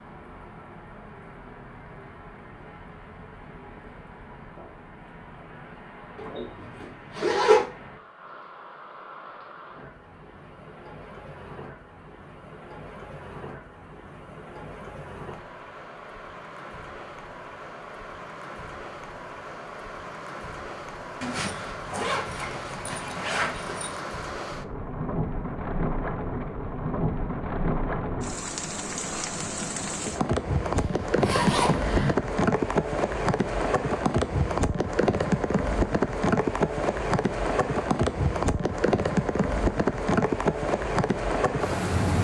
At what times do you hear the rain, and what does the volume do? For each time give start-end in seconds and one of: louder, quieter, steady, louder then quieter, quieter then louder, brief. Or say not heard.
0.0-42.1 louder.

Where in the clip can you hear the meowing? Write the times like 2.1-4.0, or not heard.
not heard.